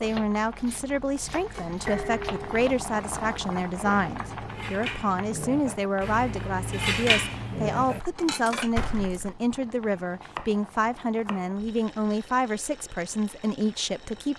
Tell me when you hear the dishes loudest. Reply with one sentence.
The loudest moment of the dishes is at 7 seconds.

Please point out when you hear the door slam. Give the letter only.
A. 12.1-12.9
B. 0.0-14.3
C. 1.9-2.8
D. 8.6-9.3
D.